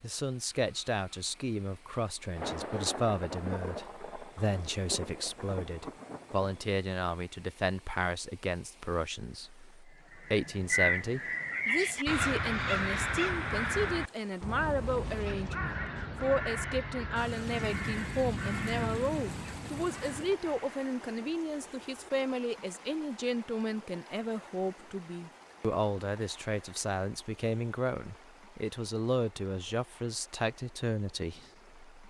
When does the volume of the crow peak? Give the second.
11 s.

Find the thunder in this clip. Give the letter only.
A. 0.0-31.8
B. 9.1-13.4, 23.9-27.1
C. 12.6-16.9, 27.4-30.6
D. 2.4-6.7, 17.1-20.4
D.